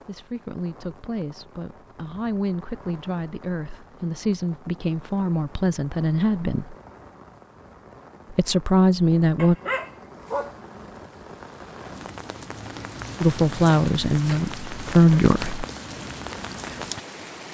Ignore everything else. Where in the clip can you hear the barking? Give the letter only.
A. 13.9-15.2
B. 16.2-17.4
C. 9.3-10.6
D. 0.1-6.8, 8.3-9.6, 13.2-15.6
C.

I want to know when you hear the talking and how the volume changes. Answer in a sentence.
You can hear the talking from 0.1 to 6.8 s, getting louder; briefly from 8.3 to 9.6 s; and briefly from 13.2 to 15.6 s.